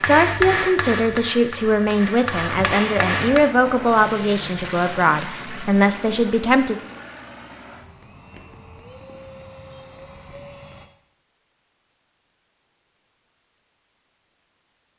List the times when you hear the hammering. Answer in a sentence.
You can hear the hammering from 0.0 to 3.5 s.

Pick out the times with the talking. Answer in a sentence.
You can hear the talking from 0.0 to 6.8 s.